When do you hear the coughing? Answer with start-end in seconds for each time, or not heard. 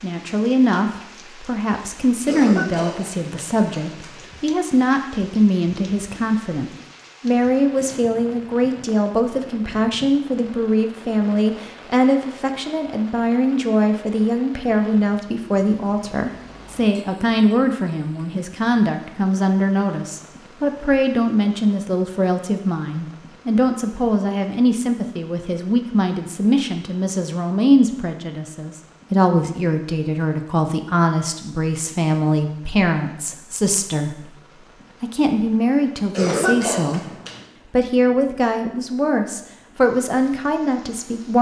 2.2-4.2, 36.1-37.4.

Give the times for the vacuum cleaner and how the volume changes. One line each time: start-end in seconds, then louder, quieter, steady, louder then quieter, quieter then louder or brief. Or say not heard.
not heard.